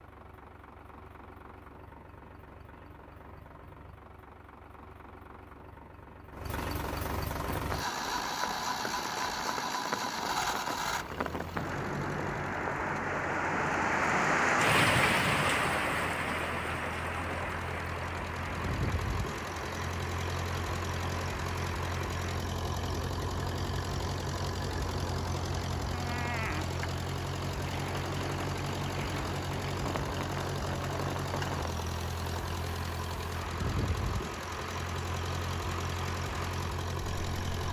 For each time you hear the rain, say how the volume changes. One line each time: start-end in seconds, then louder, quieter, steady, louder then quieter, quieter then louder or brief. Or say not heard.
7.4-37.6 louder then quieter.